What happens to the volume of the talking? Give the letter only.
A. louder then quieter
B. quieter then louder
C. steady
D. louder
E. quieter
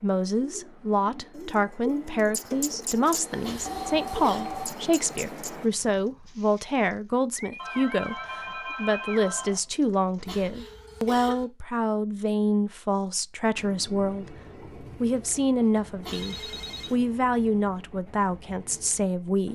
C.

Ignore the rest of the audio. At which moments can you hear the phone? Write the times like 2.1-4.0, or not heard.
3.3-4.8, 7.5-9.6, 16.1-16.9.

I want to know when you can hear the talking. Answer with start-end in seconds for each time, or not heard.
0.0-19.5.